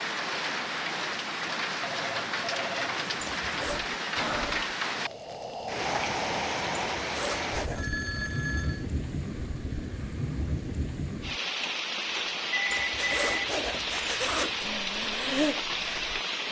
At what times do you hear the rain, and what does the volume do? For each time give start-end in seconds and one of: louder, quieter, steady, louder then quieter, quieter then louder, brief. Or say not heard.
0.0-16.4 steady.